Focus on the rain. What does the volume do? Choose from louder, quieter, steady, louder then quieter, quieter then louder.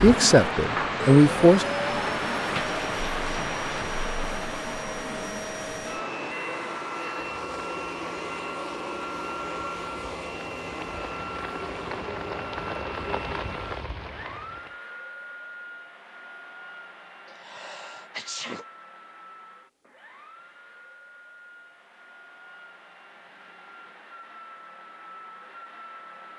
quieter then louder.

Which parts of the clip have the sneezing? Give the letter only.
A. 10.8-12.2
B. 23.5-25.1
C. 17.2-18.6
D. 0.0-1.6
C.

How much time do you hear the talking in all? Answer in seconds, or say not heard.
2 s.